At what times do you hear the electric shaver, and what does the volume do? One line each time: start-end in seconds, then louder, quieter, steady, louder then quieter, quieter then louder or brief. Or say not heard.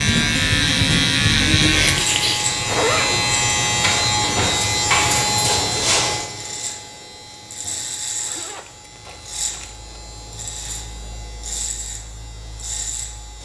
0.0-13.4 quieter.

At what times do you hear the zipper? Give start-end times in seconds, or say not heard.
2.6-3.3, 8.2-9.9.